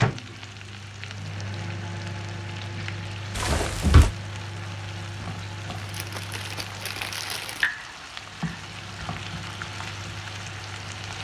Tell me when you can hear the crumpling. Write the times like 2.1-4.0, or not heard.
3.4-4.2, 5.8-7.7.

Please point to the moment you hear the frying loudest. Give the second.
8 s.